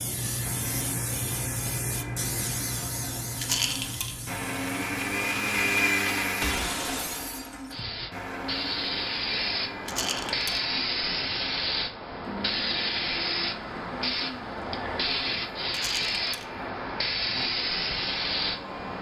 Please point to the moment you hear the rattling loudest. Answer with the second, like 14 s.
4 s.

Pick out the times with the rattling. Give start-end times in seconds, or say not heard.
3.4-4.2, 9.8-10.6, 15.7-16.4.